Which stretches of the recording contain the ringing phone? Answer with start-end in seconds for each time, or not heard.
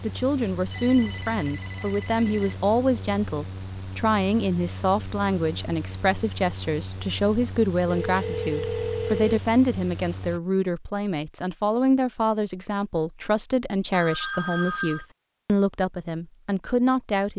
0.7-2.6, 7.8-9.4, 13.9-15.1.